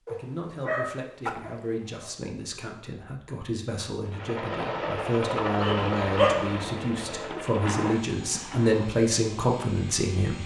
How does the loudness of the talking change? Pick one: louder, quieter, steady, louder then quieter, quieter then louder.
louder.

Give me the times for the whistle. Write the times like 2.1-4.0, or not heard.
not heard.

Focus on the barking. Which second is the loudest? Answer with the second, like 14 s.
6 s.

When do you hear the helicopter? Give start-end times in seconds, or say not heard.
4.0-10.4.